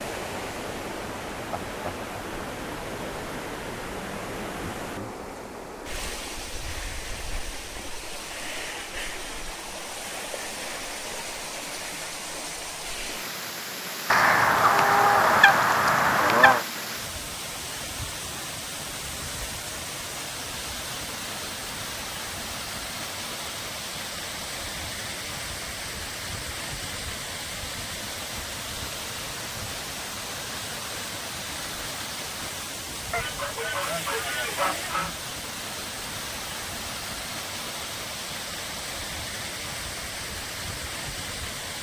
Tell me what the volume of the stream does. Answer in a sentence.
The volume of the stream stays about the same.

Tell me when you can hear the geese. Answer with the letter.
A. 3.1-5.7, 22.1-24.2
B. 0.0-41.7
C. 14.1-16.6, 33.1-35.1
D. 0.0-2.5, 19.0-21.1
C.